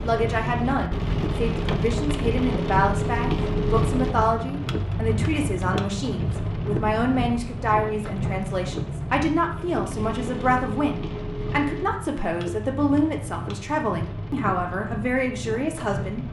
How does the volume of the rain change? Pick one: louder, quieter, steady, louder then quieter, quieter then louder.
quieter.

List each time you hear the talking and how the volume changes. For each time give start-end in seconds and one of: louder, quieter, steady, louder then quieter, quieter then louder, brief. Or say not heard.
0.0-16.2 steady.